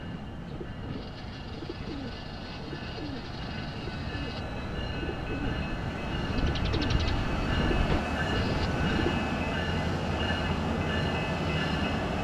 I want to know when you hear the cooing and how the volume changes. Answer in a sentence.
You can hear the cooing from 0.0 to 9.2 s, getting louder.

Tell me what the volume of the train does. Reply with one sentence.
The loudness of the train goes up.